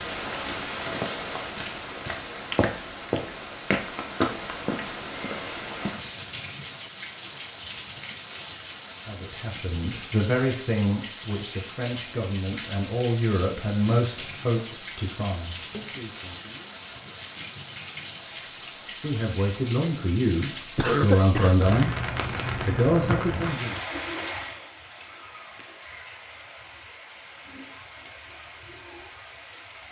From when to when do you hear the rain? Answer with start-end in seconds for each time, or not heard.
0.0-29.8.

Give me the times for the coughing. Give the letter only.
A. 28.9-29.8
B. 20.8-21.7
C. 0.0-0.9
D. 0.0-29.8
B.